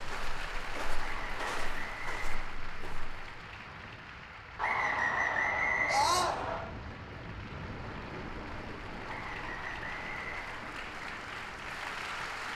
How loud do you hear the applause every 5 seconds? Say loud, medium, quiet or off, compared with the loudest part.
loud, medium, loud.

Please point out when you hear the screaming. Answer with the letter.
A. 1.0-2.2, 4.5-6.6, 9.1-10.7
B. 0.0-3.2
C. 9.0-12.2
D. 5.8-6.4
D.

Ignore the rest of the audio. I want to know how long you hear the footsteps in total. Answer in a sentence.
The footsteps can be heard for 3 seconds in total.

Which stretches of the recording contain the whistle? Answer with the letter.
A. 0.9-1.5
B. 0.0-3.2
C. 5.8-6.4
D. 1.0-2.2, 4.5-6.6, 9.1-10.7
D.